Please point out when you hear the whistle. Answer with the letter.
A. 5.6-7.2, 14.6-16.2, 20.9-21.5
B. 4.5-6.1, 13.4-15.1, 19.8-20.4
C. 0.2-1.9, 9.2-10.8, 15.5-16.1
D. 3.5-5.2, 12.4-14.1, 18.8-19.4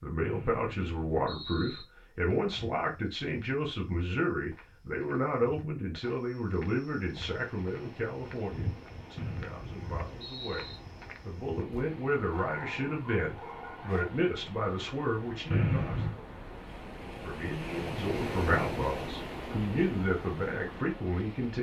C.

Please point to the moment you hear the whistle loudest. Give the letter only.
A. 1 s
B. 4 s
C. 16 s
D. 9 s
C.